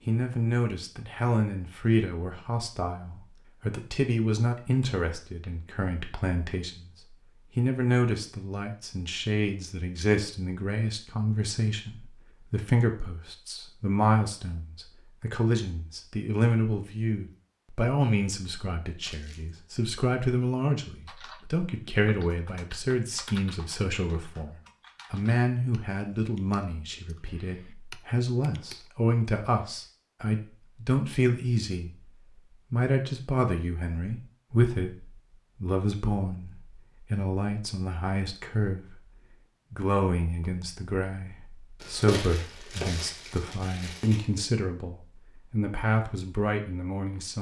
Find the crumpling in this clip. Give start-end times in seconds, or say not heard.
19.0-19.6, 41.8-44.4.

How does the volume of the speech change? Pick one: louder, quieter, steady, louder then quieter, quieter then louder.
steady.